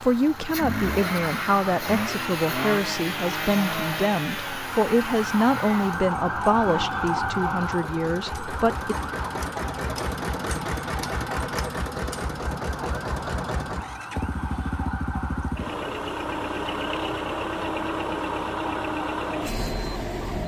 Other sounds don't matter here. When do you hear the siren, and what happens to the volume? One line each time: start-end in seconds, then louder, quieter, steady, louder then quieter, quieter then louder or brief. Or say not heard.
0.0-20.4 louder then quieter.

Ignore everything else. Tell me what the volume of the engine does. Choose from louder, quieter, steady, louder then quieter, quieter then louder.
quieter then louder.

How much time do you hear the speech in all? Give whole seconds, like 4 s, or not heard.
9 s.